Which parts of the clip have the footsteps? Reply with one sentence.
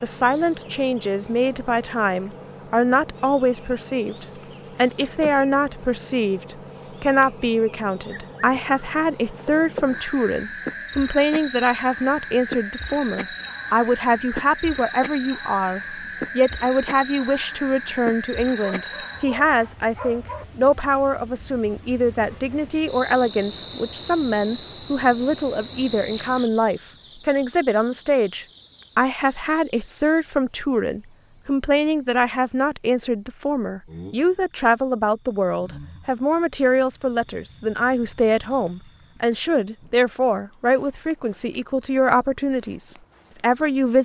You can't hear the footsteps here.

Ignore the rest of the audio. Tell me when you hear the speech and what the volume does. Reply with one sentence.
The speech can be heard from 0.0 to 44.0 s, at a steady volume.